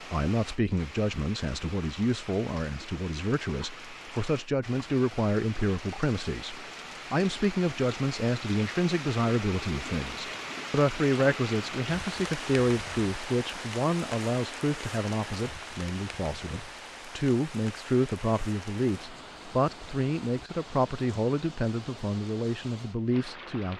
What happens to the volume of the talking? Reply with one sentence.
The loudness of the talking stays about the same.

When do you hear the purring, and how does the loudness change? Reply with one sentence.
The purring can't be heard in this clip.